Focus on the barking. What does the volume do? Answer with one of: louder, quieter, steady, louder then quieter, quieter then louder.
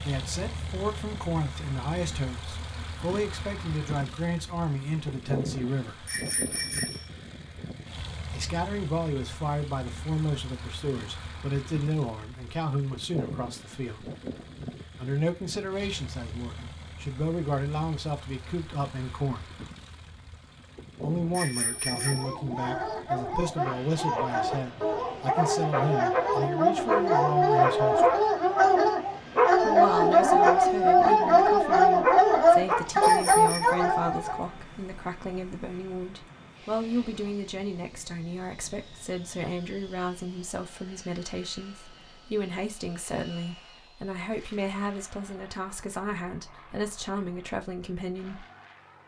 louder.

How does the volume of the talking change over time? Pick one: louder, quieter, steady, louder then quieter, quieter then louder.
steady.